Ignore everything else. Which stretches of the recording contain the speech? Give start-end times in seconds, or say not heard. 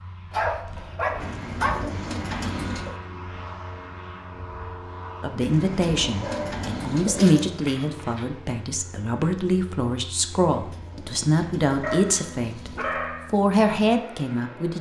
5.2-14.7.